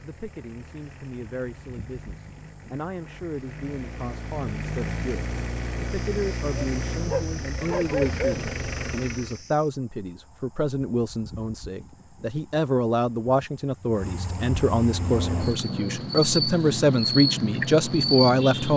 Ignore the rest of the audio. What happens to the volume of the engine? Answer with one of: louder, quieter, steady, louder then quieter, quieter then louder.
louder.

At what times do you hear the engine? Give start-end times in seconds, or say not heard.
0.0-9.4.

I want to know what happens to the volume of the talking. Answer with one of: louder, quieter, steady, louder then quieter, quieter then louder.
louder.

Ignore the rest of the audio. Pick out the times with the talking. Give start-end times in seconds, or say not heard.
0.0-18.7.